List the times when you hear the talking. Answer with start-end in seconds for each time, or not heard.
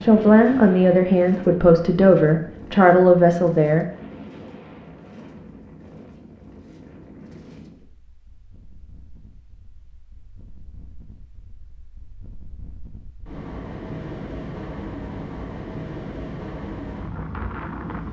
0.0-3.9.